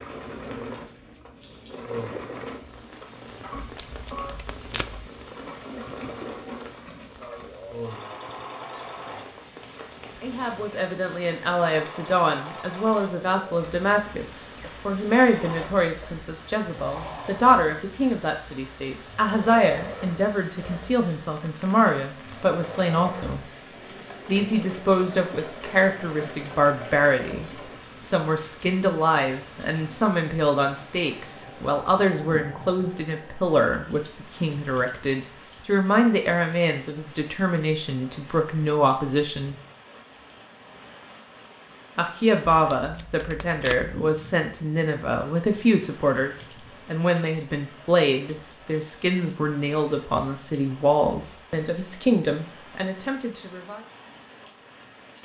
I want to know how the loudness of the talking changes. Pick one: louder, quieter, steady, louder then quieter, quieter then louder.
steady.